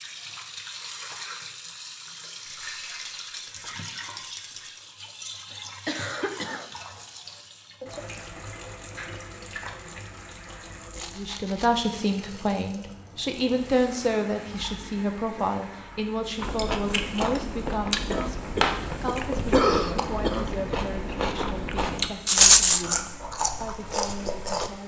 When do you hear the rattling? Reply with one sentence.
The rattling can be heard from 2.5 to 4.8 s, from 10.9 to 11.8 s and from 22.2 to 22.9 s.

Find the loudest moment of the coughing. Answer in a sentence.
The volume of the coughing peaks at 20 seconds.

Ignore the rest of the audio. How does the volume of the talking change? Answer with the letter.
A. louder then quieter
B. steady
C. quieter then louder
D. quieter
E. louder
D.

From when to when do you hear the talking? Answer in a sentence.
The talking can be heard from 11.2 to 24.8 s.